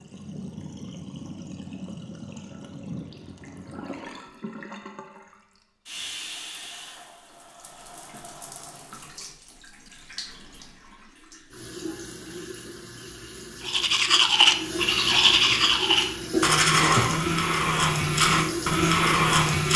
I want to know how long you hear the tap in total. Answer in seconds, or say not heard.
20 s.